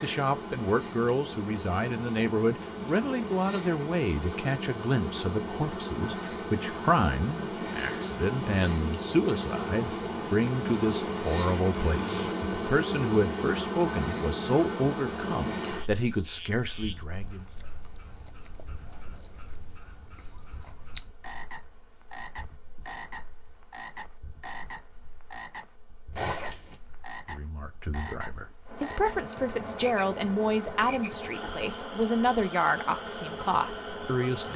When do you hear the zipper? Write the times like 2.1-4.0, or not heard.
11.8-12.4, 26.1-26.8.